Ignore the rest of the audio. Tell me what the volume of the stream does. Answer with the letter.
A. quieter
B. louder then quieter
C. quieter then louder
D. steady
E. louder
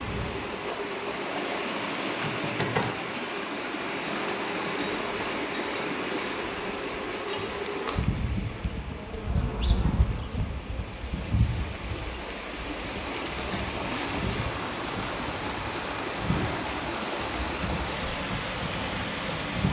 C.